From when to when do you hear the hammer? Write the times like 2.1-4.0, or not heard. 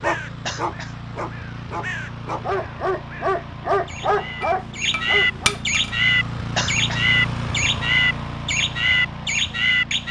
4.4-6.0.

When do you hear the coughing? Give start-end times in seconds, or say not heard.
0.5-0.9, 6.5-7.0.